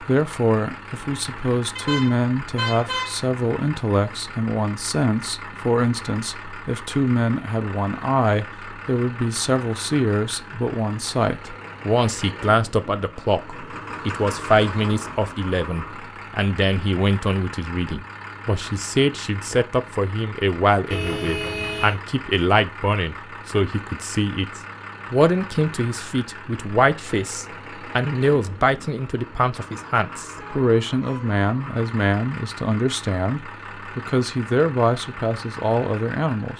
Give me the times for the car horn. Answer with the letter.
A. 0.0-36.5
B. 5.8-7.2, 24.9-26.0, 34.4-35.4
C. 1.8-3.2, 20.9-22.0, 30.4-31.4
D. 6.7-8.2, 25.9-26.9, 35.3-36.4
C.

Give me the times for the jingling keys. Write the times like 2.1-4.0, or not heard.
not heard.